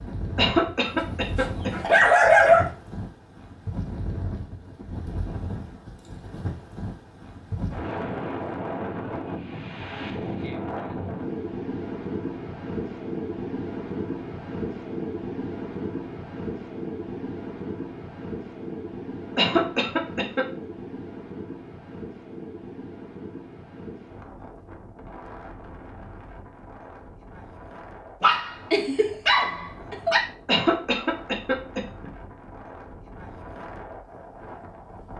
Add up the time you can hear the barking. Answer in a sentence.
The barking can be heard for 4 seconds in total.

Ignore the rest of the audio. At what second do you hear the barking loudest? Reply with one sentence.
The loudest moment of the barking is at 2 seconds.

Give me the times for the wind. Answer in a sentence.
You can hear the wind from 0.0 to 35.1 s.